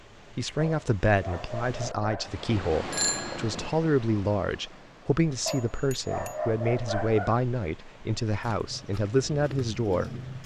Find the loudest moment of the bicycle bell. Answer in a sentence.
The loudest moment of the bicycle bell is at 3 seconds.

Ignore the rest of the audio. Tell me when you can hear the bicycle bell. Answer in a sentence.
You can hear the bicycle bell from 2.6 to 3.7 s and from 5.5 to 6.4 s.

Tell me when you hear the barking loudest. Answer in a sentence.
The loudest moment of the barking is at 7 seconds.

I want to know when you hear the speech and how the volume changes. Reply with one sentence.
You can hear the speech from 0.3 to 10.2 s, at a steady volume.